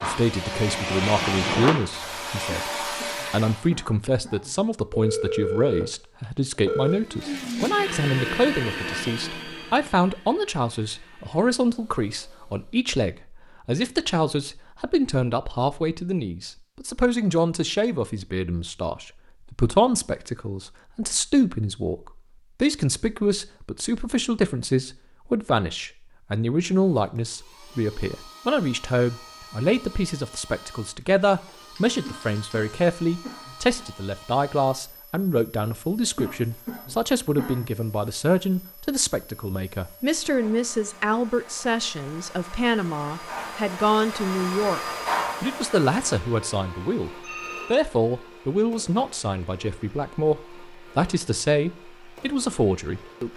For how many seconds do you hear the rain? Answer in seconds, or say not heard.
not heard.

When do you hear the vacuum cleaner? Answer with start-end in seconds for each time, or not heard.
0.0-3.6, 6.8-12.8, 26.7-53.3.